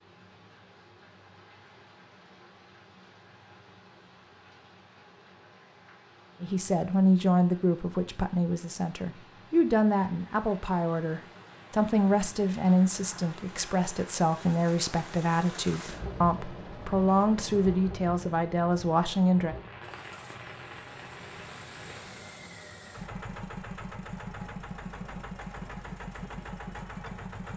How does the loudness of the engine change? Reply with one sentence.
The volume of the engine goes up.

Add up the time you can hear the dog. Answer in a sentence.
You can't hear the dog here.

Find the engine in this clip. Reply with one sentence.
You can hear the engine from 19.8 to 27.5 s.